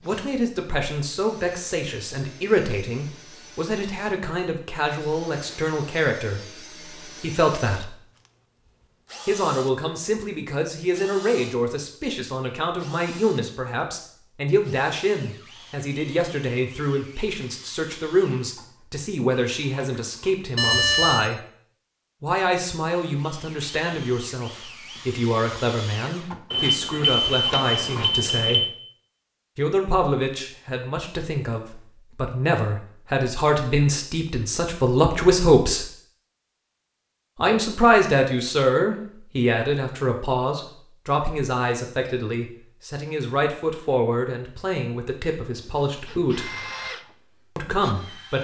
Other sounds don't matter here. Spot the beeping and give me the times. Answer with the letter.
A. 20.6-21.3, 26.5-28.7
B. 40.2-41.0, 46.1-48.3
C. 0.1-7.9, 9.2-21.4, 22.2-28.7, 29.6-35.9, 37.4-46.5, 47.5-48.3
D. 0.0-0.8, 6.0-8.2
A.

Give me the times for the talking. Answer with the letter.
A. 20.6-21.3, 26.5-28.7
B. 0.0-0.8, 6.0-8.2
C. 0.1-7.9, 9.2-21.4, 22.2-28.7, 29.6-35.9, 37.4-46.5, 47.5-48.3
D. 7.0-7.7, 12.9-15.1
C.